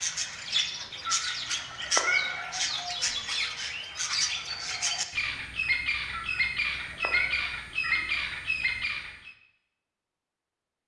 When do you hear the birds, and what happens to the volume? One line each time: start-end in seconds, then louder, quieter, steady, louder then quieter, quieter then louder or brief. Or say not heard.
0.0-9.3 steady.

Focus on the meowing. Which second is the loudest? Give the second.
2 s.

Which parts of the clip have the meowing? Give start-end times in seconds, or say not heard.
0.6-2.5, 5.6-8.1.